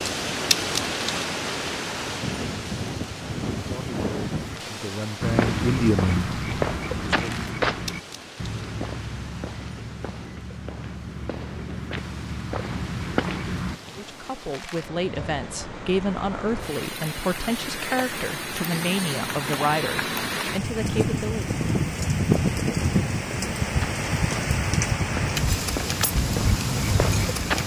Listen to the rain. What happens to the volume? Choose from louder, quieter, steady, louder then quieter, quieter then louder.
quieter then louder.